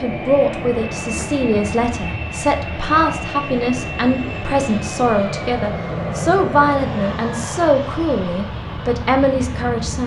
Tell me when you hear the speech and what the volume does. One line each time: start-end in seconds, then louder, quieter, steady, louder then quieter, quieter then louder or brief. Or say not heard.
0.0-10.0 steady.